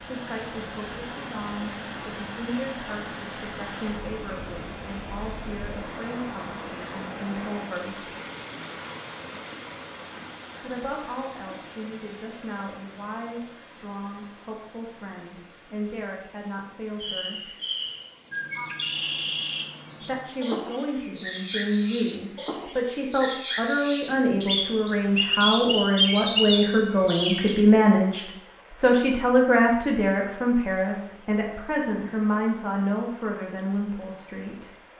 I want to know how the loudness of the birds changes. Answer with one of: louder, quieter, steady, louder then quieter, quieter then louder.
louder.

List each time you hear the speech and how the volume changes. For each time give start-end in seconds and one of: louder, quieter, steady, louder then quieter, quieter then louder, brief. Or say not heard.
0.1-8.1 steady
10.6-17.5 steady
20.0-34.7 louder then quieter.